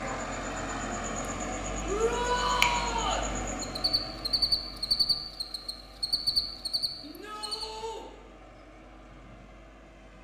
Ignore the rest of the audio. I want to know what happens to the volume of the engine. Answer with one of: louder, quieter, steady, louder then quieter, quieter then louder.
quieter.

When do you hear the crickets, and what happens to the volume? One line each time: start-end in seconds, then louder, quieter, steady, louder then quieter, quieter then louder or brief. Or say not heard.
0.0-7.7 louder.